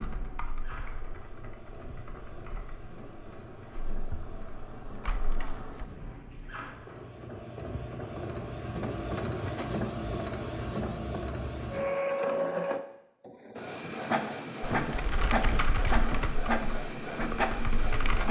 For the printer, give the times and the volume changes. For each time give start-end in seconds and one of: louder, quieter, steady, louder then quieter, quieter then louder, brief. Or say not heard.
0.0-18.2 louder.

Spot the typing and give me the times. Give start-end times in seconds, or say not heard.
0.0-5.8, 14.6-18.2.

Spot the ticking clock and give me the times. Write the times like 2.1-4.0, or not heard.
not heard.